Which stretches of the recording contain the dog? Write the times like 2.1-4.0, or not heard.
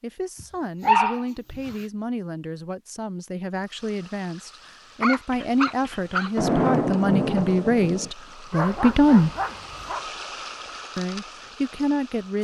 0.4-1.8, 5.0-6.3, 8.5-10.1.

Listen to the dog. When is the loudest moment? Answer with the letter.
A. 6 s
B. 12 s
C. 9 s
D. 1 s
D.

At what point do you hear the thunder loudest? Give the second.
7 s.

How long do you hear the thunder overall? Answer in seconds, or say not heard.
3 s.